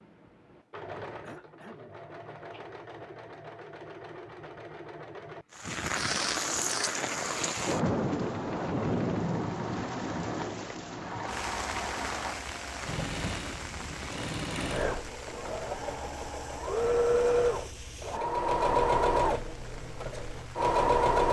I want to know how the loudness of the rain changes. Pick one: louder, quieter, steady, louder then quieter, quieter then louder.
quieter.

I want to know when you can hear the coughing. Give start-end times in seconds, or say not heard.
1.2-2.0.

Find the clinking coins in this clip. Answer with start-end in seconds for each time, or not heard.
not heard.